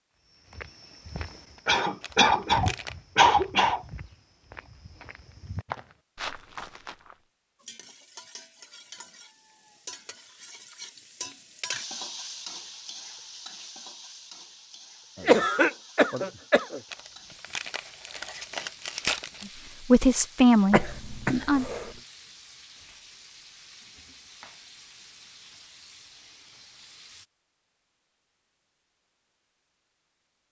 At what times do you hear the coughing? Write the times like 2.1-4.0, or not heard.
1.6-3.8, 15.2-16.8, 20.7-21.9.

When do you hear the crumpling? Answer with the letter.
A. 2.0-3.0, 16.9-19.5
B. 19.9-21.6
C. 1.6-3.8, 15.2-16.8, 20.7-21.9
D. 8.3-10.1
A.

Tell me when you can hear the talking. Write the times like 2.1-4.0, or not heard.
19.9-21.6.